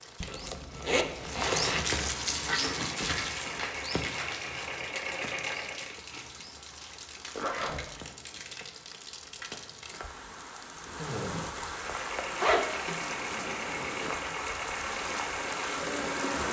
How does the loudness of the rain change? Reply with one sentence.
The loudness of the rain goes down, then up.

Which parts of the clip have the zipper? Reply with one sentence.
The zipper can be heard from 0.2 to 1.9 s, from 7.3 to 7.8 s and from 12.3 to 13.0 s.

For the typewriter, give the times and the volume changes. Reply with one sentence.
You can't hear the typewriter here.